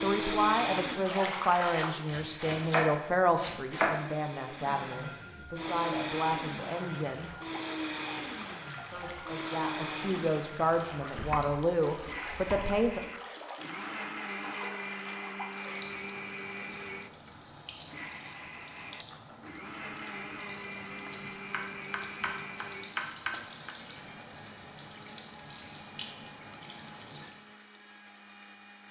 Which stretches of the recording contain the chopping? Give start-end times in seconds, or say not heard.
2.0-4.0, 11.2-13.0, 20.9-23.7.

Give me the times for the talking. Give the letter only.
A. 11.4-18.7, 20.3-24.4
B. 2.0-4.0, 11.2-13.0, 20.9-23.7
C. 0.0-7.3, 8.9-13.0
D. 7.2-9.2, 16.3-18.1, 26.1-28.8
C.